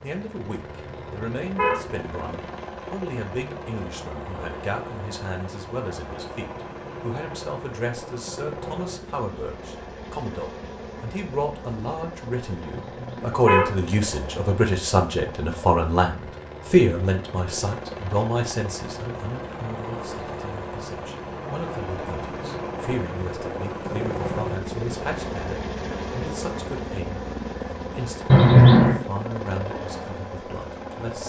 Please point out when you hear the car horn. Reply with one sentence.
You can hear the car horn from 0.8 to 2.3 s, from 12.8 to 13.9 s and from 28.2 to 29.0 s.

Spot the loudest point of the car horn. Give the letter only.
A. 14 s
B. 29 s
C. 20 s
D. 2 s
B.